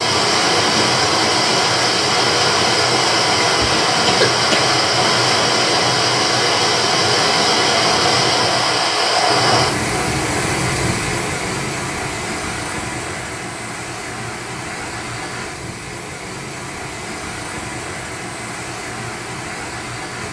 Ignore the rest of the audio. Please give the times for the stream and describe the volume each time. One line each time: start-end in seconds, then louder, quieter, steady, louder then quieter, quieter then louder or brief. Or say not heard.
0.0-20.2 quieter.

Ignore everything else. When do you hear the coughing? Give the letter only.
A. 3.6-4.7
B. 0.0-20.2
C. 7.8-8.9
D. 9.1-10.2
A.